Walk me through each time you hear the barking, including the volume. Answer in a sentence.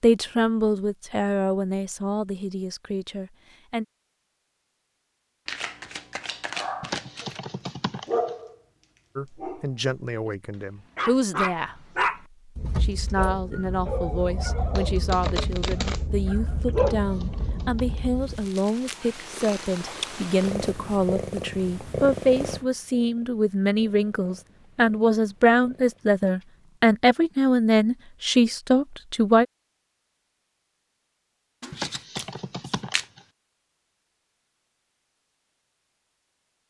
You can hear the barking briefly from 6.5 to 7.2 s; briefly from 8.1 to 10.3 s; and from 10.9 to 18.4 s, getting quieter then louder.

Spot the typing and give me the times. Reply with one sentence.
You can hear the typing from 6.8 to 8.3 s, from 16.8 to 18.1 s and from 31.7 to 33.2 s.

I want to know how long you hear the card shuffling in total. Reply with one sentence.
You can hear the card shuffling for 5 seconds altogether.